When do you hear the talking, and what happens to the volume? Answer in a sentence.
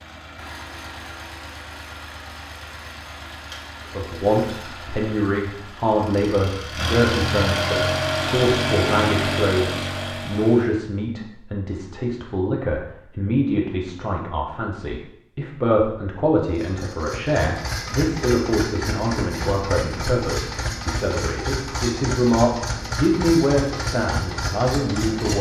The talking can be heard from 3.9 to 25.3 s, at a steady volume.